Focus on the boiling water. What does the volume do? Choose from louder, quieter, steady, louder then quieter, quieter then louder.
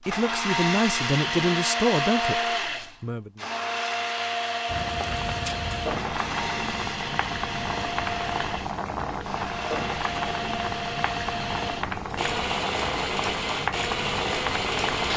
steady.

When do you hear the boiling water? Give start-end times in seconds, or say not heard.
4.7-15.1.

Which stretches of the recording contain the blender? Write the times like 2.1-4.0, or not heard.
0.0-15.1.